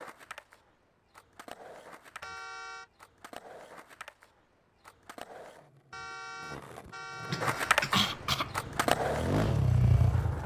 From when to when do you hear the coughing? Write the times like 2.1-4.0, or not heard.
6.8-8.5.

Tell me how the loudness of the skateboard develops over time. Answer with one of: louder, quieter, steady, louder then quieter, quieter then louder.
louder.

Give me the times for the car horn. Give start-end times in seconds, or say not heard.
2.2-2.9, 5.9-7.8.